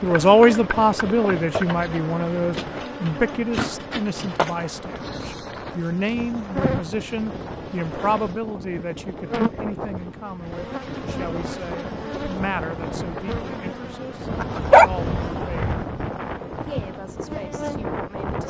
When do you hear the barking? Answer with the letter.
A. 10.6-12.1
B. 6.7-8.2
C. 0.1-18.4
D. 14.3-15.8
D.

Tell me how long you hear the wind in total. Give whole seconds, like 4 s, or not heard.
18 s.